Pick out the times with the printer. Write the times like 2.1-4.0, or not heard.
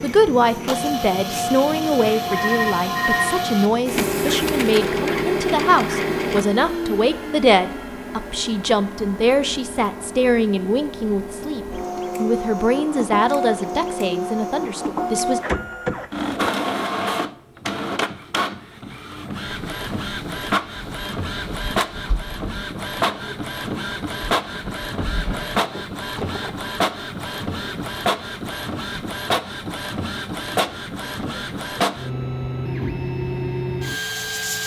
0.0-34.6.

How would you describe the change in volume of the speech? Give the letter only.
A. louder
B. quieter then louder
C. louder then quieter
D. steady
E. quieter
D.